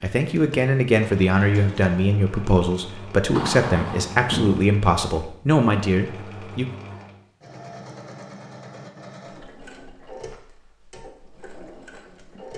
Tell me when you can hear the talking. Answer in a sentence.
The talking can be heard from 0.0 to 6.7 s.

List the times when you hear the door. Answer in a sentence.
The door can be heard from 3.3 to 4.7 s.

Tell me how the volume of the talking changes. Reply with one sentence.
The loudness of the talking stays about the same.